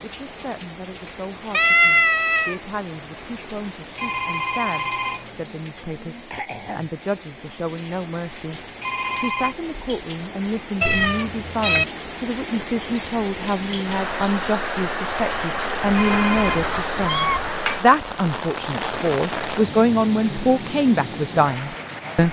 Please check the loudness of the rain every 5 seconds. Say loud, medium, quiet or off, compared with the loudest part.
medium, medium, loud, loud, medium.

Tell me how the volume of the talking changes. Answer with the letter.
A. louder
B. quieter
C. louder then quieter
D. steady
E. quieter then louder
A.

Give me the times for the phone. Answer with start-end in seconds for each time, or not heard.
4.0-5.3, 8.8-9.6, 15.9-16.6.